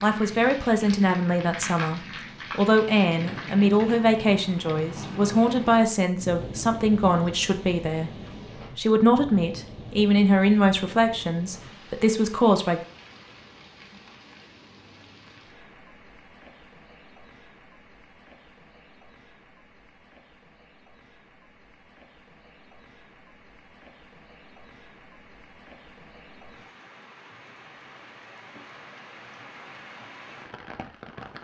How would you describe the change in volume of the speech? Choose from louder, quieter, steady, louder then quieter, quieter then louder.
steady.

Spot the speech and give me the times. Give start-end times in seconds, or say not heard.
0.0-12.8.